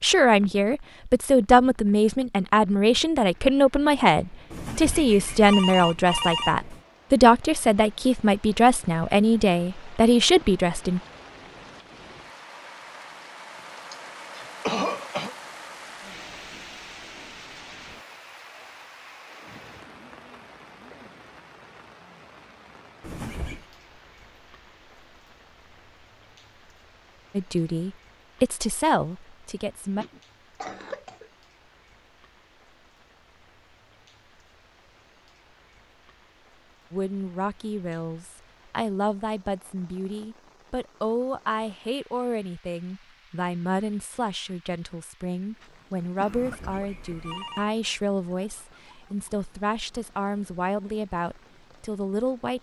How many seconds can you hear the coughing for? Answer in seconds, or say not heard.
4 s.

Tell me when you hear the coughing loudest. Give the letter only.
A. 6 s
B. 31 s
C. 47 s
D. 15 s
D.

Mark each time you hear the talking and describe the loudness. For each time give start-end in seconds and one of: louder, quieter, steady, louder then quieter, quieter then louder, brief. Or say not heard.
0.0-11.0 steady
27.4-30.1 brief
36.9-52.5 steady.